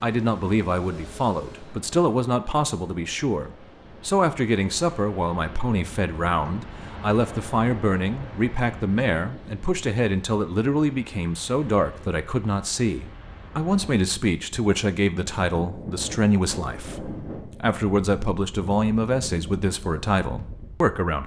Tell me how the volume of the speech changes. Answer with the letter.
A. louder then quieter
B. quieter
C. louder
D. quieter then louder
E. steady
E.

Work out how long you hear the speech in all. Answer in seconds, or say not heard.
21 s.